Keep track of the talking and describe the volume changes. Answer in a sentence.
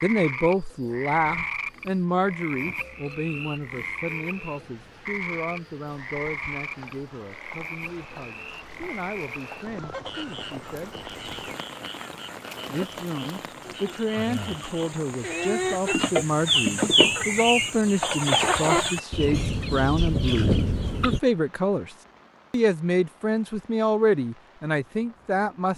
The volume of the talking goes down, then up.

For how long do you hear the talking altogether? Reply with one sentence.
The talking can be heard for 24 seconds in total.